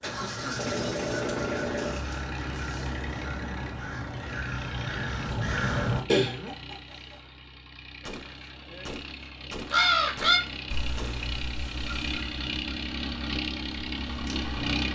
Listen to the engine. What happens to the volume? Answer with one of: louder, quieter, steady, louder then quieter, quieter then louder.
quieter then louder.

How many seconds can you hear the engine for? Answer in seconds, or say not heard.
15 s.